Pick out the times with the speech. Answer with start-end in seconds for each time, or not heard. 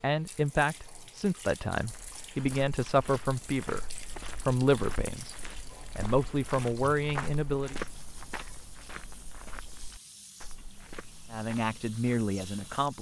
0.0-7.8, 11.3-12.9.